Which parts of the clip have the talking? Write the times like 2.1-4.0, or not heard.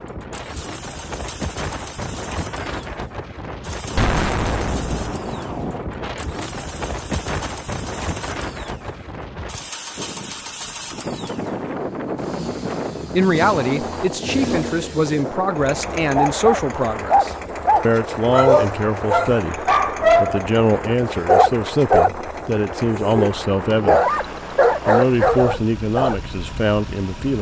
13.1-24.0, 24.9-27.3.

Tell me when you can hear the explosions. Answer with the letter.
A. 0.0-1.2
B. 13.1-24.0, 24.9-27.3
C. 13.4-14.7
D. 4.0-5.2
D.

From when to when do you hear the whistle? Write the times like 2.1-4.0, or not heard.
not heard.